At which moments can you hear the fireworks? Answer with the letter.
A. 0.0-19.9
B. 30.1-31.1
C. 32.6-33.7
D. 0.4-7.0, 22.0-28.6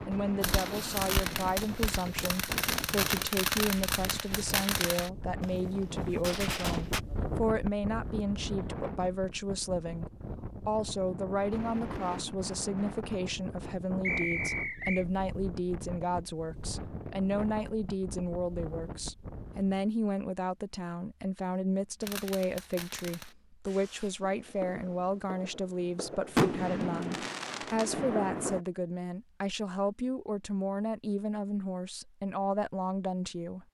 D.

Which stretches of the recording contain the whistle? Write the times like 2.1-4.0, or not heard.
14.0-15.1.